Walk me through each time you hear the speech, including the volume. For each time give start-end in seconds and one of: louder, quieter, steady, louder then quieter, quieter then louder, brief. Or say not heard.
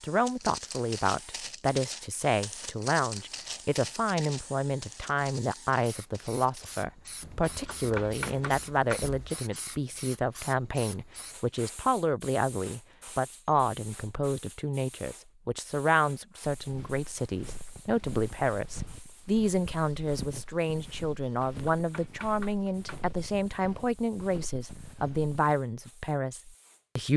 0.0-27.1 steady.